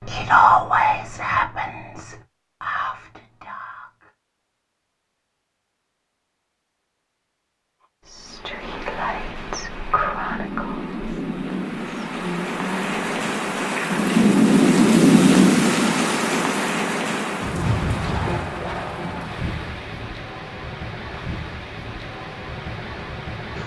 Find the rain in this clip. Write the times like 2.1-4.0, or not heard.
8.2-23.6.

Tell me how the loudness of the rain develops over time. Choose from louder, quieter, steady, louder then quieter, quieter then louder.
louder then quieter.